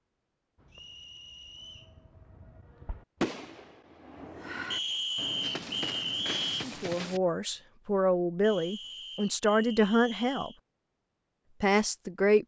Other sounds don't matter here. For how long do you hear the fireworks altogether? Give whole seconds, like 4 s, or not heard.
7 s.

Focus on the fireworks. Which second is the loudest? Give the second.
3 s.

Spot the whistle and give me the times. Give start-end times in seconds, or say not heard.
0.7-1.9, 4.7-6.7, 8.4-10.6.